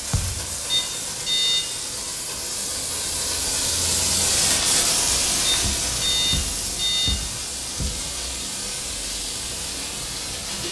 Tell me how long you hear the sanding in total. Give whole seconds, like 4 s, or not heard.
not heard.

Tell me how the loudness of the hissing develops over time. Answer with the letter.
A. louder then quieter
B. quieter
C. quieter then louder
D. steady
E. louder
A.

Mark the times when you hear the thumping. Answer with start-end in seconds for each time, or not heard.
0.1-0.5, 5.6-8.0.